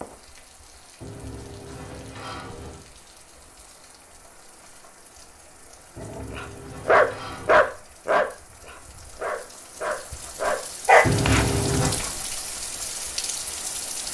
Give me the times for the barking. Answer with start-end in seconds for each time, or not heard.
6.0-12.1.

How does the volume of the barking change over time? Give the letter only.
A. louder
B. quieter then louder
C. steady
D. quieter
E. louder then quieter
B.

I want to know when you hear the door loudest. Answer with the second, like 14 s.
11 s.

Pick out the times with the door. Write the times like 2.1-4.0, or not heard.
1.0-2.9, 6.0-7.7, 11.0-12.0.